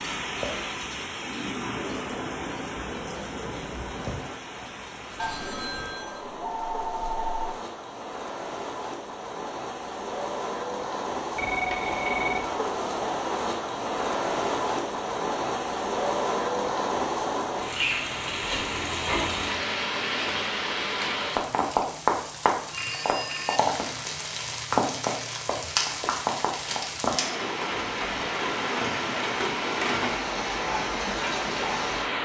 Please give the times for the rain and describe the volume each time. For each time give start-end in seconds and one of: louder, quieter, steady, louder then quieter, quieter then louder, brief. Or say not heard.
0.0-32.2 louder.